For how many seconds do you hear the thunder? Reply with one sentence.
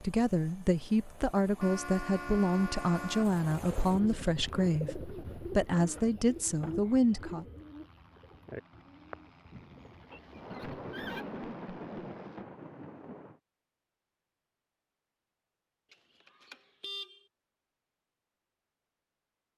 The thunder can be heard for 4 seconds in total.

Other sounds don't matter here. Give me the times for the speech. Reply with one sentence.
The speech can be heard from 0.0 to 7.5 s.